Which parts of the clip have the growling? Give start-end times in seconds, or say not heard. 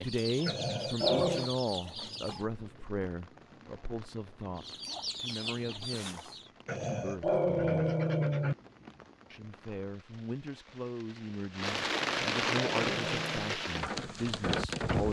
0.5-1.5, 6.7-8.6, 12.0-13.6.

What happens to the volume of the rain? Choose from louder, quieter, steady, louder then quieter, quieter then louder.
louder.